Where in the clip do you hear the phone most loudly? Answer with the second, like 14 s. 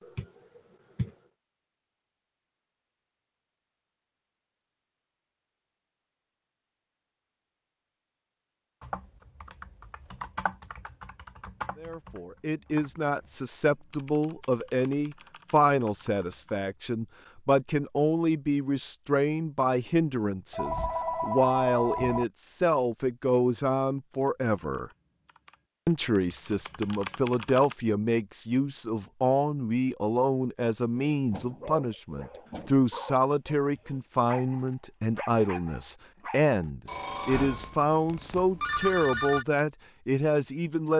39 s.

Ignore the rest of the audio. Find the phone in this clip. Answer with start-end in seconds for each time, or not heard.
0.0-1.1, 20.5-22.2, 36.9-39.5.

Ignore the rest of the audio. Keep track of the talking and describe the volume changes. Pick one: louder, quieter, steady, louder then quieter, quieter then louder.
steady.